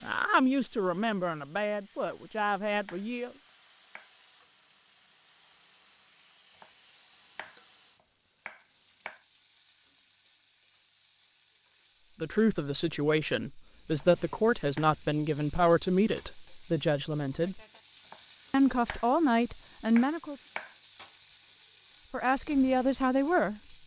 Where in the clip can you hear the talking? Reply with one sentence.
You can hear the talking from 0.0 to 3.3 s, from 12.2 to 17.6 s, from 18.5 to 20.4 s and from 22.1 to 23.6 s.